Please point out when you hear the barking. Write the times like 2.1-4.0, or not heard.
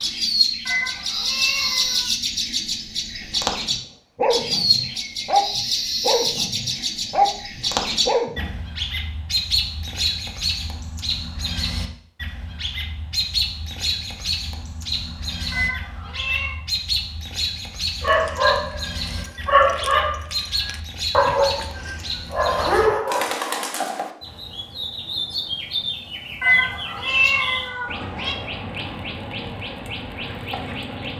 3.7-8.6, 18.0-23.4.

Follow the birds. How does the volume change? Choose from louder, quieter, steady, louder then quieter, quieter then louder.
quieter.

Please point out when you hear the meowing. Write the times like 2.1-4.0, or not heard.
0.7-2.1, 15.5-16.6, 26.4-28.4.